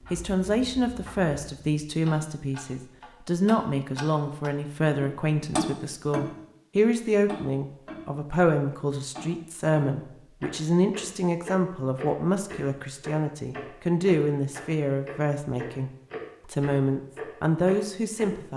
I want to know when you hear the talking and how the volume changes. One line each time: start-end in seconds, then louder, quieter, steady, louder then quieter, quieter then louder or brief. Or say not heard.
0.1-18.5 steady.